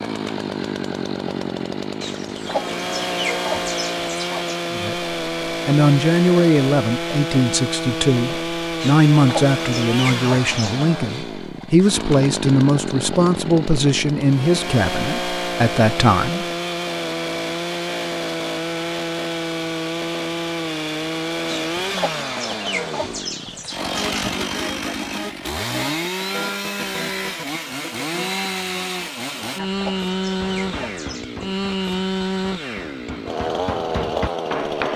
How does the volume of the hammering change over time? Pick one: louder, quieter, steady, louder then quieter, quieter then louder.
quieter then louder.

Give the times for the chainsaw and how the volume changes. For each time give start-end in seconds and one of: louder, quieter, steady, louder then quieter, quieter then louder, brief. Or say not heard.
0.0-34.9 steady.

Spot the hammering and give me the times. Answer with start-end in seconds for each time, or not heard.
30.4-34.9.